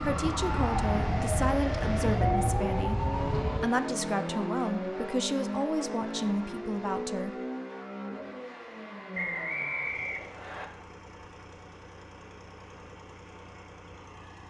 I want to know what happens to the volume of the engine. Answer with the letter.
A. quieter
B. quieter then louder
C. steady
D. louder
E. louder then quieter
A.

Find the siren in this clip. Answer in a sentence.
You can hear the siren from 0.0 to 3.6 s.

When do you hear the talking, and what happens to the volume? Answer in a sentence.
You can hear the talking from 0.0 to 7.3 s, at a steady volume.